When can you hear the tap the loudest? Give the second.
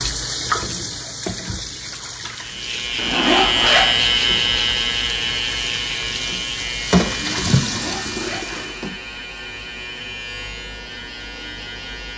7 s.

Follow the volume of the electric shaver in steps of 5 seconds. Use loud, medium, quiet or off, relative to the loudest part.
loud, medium, quiet.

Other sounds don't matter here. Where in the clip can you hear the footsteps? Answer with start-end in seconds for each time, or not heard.
not heard.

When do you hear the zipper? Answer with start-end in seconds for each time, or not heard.
3.0-3.9, 7.5-8.7.